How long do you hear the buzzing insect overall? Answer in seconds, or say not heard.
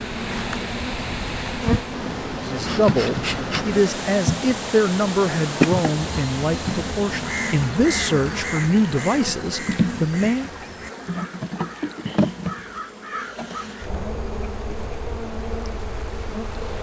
17 s.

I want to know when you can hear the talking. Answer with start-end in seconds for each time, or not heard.
2.5-10.5.